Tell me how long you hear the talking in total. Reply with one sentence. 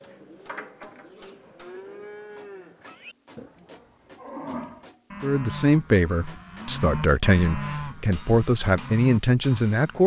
The talking can be heard for 5 seconds in total.